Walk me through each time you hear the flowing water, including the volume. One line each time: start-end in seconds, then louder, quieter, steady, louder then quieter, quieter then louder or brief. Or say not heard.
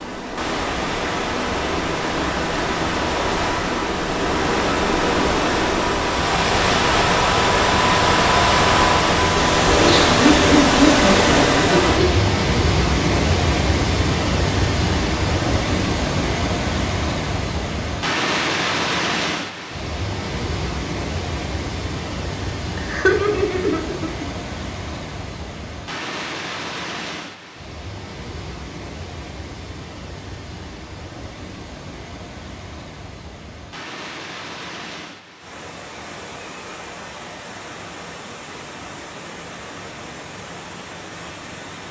0.0-41.8 quieter.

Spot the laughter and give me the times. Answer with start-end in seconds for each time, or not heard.
9.8-12.2, 22.8-24.2.